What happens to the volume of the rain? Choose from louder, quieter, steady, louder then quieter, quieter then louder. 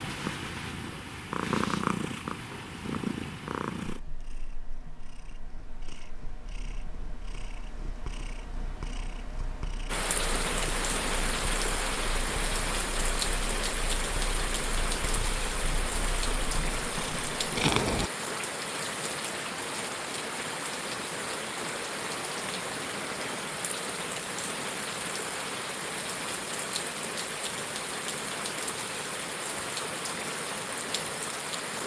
steady.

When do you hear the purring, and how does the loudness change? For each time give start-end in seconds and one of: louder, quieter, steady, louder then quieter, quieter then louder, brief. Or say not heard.
0.0-18.1 quieter then louder.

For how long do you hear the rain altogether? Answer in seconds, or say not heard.
22 s.